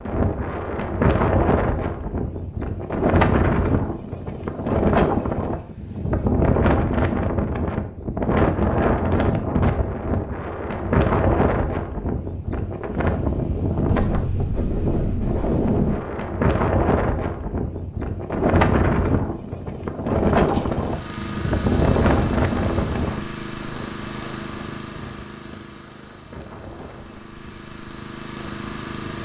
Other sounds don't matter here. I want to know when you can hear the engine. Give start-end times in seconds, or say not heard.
20.1-29.2.